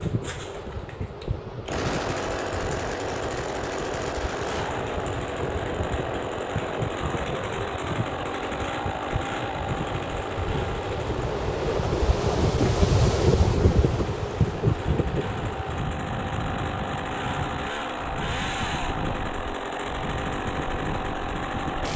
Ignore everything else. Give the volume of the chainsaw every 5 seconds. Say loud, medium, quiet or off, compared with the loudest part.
loud, loud, medium, loud, loud.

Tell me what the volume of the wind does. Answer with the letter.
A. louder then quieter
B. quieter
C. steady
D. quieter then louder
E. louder
A.